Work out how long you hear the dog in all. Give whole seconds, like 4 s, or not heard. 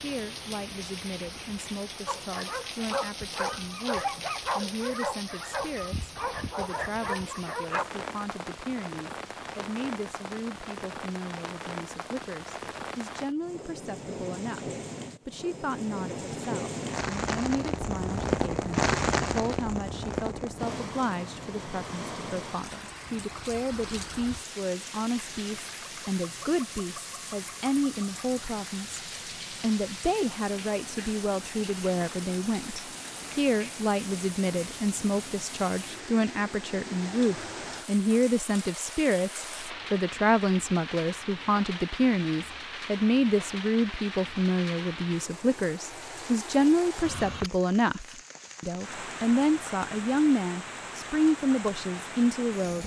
6 s.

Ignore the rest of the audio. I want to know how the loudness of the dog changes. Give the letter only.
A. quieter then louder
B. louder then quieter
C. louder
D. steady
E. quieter
D.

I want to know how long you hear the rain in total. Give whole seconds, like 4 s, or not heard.
53 s.